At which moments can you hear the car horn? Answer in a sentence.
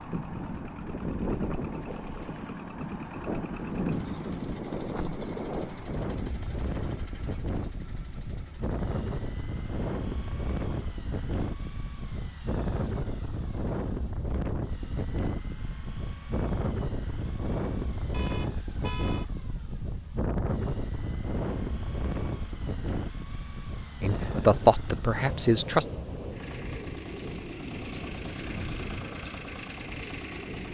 You can hear the car horn from 18.1 to 19.3 s.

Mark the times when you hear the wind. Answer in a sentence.
You can hear the wind from 0.0 to 30.6 s.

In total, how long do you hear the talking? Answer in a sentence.
You can hear the talking for 2 seconds altogether.